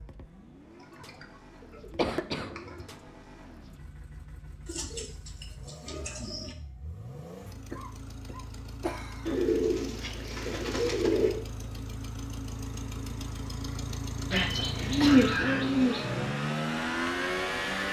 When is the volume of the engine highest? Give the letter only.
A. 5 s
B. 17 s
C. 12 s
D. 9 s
B.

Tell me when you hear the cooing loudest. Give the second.
15 s.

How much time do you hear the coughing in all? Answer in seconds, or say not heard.
3 s.